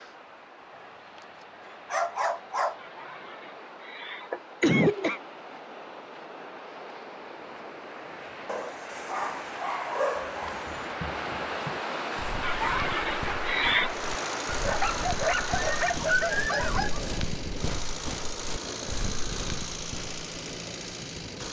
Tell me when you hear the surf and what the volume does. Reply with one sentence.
The surf can be heard from 0.0 to 21.4 s, getting louder then quieter.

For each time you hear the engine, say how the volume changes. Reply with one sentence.
The engine can be heard from 13.8 to 21.4 s, at a steady volume.